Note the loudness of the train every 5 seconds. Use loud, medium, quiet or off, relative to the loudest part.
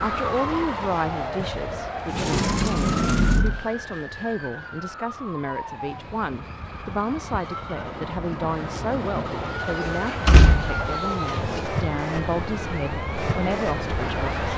loud, medium, loud.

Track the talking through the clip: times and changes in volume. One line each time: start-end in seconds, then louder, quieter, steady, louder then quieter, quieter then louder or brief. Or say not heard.
0.0-14.4 steady.